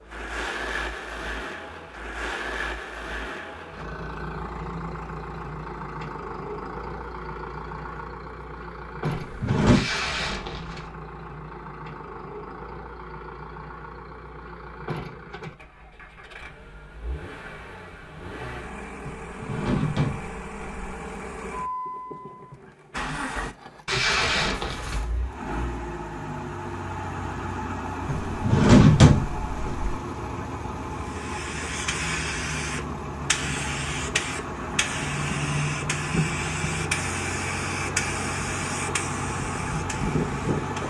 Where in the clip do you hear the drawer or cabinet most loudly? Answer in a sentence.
The loudest moment of the drawer or cabinet is at 29 seconds.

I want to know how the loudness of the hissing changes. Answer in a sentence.
The loudness of the hissing stays about the same.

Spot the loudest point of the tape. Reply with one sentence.
The volume of the tape peaks at 24 seconds.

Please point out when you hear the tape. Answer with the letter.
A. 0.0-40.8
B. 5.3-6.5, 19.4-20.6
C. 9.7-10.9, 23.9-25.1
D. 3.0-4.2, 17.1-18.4
C.